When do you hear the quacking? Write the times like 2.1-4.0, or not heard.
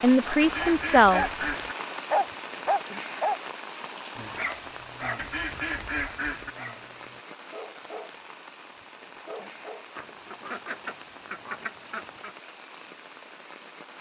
0.2-1.8, 5.0-6.5, 9.9-12.3.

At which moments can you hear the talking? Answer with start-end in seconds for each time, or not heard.
0.0-1.4.